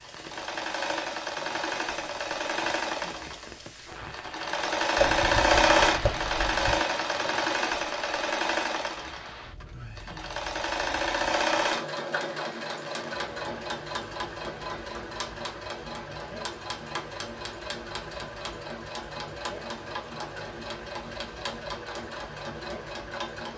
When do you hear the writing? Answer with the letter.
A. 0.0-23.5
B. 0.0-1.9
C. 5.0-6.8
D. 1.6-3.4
C.